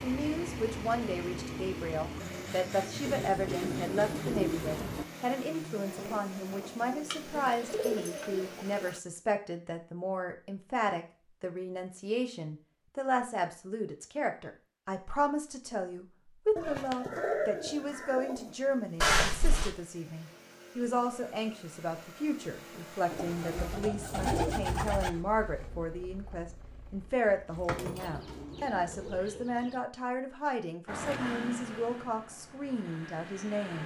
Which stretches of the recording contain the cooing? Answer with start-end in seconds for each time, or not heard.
3.0-5.0, 7.3-8.9, 16.6-18.6, 23.1-25.1, 27.8-29.8.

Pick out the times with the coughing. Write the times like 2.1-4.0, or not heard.
not heard.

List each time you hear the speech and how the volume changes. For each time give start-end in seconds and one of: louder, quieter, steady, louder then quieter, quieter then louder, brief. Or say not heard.
0.0-33.8 steady.